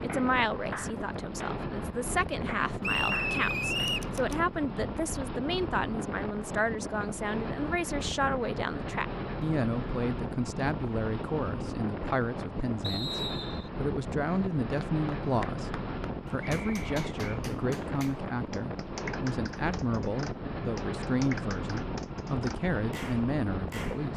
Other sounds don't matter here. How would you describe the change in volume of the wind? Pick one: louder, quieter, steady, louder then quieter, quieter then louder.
steady.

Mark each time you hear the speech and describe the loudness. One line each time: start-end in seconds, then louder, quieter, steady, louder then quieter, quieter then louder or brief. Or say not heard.
0.0-24.1 steady.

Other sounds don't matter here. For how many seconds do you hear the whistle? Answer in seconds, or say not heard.
3 s.